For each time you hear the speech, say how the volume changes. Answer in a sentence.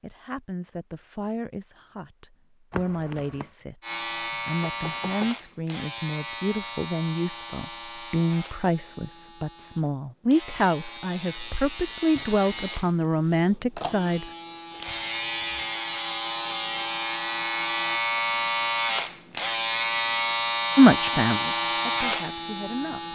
You can hear the speech from 0.0 to 14.2 s, getting louder; and briefly from 20.8 to 23.1 s.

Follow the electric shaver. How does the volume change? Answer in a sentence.
The loudness of the electric shaver goes down, then up.